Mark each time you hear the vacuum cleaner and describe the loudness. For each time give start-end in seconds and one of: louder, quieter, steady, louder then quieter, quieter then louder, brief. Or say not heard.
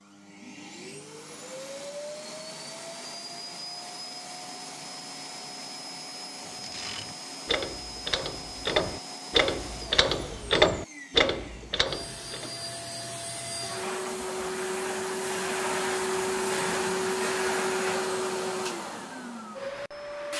0.0-20.3 louder.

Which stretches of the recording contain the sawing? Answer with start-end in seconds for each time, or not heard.
not heard.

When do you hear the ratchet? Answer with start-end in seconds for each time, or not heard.
6.5-12.5.